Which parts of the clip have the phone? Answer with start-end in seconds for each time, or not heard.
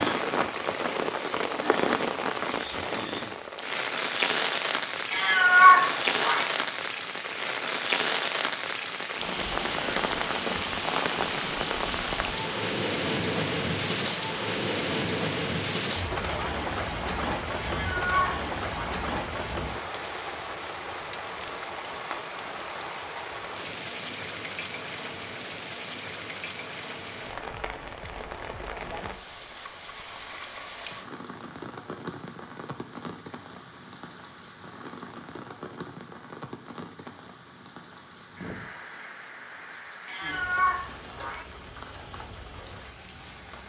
not heard.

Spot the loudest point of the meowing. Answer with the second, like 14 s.
6 s.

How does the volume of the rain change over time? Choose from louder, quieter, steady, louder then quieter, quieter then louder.
quieter.